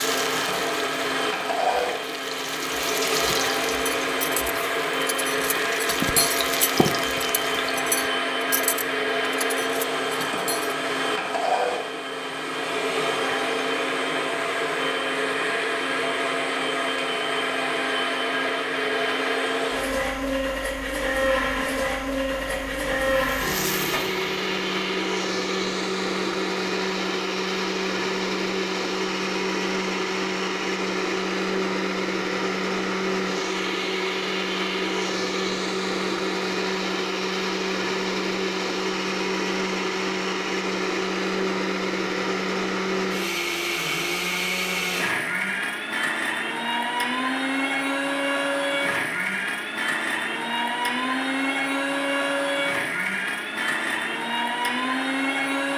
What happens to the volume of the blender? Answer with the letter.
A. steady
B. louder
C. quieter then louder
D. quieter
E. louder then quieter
A.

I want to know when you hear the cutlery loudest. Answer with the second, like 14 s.
6 s.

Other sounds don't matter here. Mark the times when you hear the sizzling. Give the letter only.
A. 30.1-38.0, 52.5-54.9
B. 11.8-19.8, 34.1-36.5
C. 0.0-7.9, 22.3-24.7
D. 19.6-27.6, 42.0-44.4
C.